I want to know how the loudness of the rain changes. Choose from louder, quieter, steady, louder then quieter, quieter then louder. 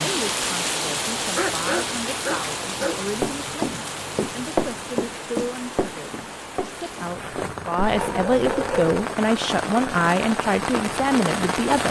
quieter then louder.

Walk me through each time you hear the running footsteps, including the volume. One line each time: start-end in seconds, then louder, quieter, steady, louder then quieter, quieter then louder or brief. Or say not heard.
3.2-8.9 quieter.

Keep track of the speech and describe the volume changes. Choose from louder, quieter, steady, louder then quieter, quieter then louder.
louder.